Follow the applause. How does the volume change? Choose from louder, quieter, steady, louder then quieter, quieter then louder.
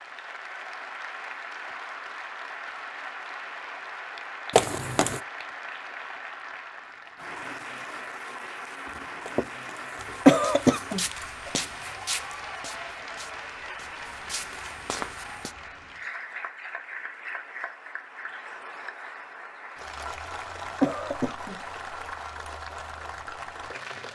steady.